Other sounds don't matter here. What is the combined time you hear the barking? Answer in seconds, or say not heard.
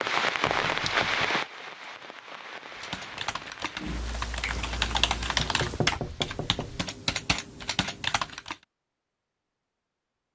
not heard.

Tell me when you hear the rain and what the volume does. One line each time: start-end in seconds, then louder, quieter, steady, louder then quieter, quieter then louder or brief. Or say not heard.
0.0-6.9 quieter.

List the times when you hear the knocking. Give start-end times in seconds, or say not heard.
0.5-1.4, 5.3-6.7.